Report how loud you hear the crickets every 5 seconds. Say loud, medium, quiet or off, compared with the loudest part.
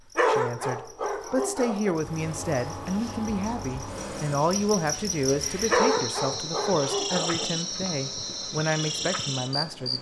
medium, loud.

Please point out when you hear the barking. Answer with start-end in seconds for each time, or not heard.
0.1-1.9, 5.7-7.5.